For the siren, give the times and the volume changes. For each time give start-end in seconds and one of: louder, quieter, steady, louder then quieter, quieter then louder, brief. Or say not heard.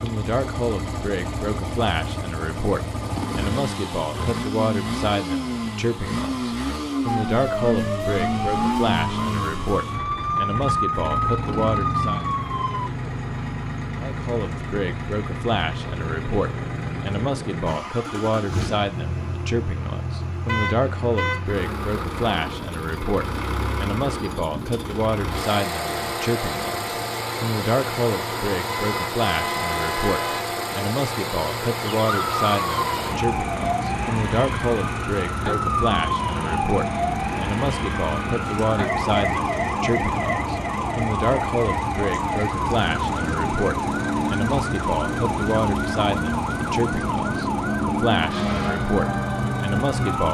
7.0-12.9 steady
32.0-50.3 steady.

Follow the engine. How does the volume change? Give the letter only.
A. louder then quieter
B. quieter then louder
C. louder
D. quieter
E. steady
E.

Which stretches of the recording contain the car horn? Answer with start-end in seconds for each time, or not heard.
20.4-21.6, 28.6-30.5.